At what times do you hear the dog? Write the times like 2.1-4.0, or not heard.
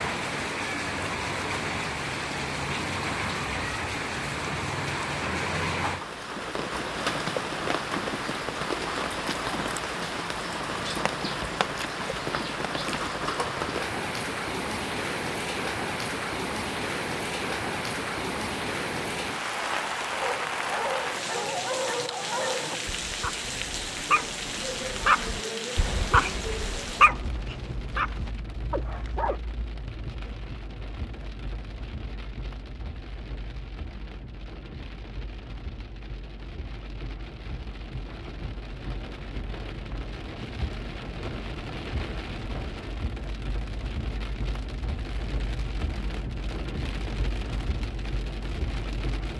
20.2-29.4.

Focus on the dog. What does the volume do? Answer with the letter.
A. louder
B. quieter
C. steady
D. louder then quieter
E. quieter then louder
D.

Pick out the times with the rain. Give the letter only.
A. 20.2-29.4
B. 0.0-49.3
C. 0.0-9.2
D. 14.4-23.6
B.